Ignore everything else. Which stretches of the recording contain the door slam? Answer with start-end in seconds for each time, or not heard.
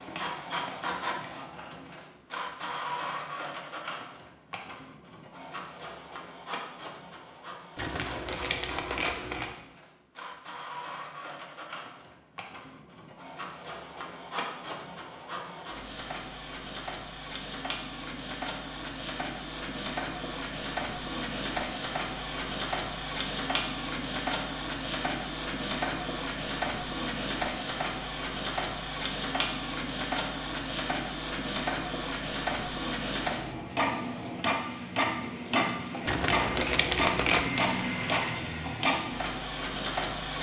not heard.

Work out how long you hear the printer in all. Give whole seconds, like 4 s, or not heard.
40 s.